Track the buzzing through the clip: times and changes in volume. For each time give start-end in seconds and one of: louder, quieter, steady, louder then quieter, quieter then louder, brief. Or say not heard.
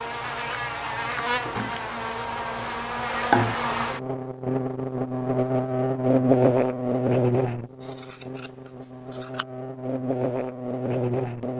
0.0-11.5 louder then quieter.